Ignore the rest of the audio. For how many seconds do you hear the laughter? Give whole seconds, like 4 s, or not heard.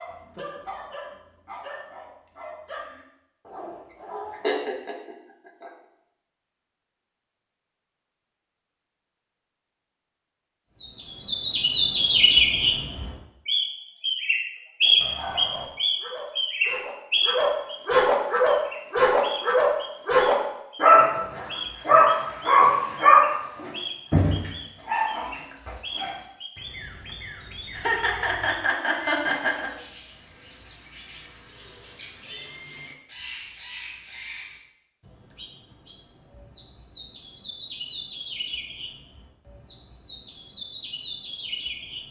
4 s.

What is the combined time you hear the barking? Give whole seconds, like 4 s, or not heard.
16 s.